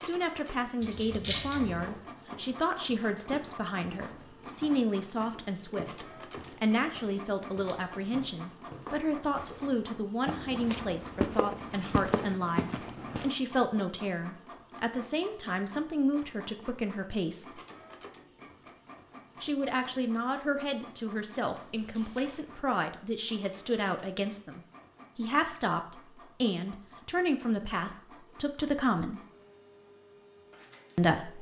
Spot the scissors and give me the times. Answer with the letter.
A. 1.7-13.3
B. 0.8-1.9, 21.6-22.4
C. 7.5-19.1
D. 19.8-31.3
B.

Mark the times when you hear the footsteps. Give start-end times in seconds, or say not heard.
1.7-13.3.